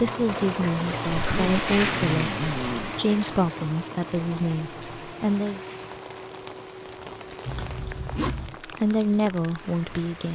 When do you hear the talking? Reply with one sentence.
The talking can be heard from 0.0 to 5.7 s and from 8.7 to 10.3 s.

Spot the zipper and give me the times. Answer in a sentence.
You can hear the zipper from 1.1 to 3.0 s and from 7.5 to 8.6 s.